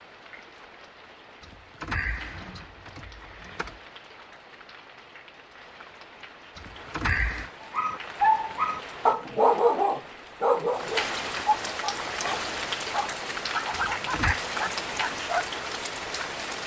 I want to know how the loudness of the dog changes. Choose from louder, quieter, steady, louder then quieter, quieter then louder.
quieter.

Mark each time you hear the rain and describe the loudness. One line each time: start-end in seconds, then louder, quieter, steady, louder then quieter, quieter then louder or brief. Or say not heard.
0.0-16.6 louder.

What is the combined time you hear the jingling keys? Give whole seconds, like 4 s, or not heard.
4 s.